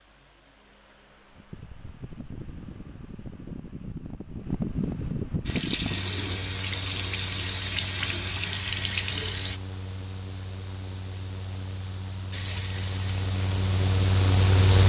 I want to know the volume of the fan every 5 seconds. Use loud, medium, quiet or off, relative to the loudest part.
medium, medium, loud.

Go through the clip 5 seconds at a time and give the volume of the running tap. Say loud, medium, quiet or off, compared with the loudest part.
off, loud, medium.